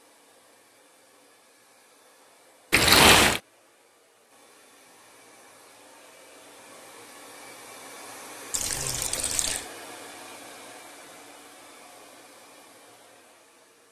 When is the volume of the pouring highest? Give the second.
3 s.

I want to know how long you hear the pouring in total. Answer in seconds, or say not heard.
2 s.